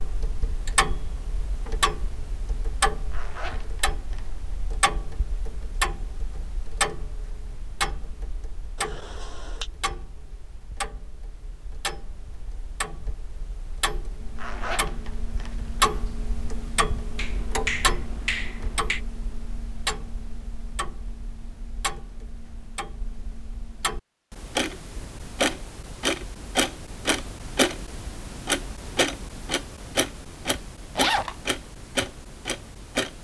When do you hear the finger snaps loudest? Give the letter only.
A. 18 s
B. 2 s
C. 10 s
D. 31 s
A.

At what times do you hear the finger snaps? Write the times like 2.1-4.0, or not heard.
8.8-9.7, 17.1-19.0.